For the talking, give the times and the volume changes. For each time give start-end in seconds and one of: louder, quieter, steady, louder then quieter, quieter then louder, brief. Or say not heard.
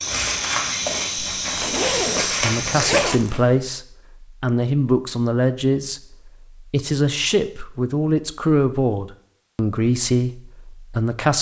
2.4-11.3 steady.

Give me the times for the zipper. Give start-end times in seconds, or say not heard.
1.2-3.7.